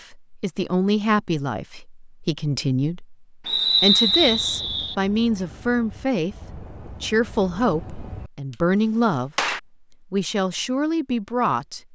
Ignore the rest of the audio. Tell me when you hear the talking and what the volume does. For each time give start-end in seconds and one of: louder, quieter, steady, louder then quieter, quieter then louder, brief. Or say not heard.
0.0-11.8 steady.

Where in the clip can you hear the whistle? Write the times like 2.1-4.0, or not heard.
3.5-5.0.